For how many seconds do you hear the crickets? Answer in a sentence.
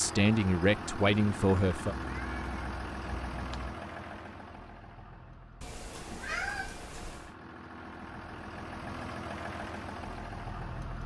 You can't hear the crickets here.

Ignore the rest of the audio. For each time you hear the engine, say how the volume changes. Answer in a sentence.
The engine can be heard from 0.0 to 11.0 s, getting quieter then louder.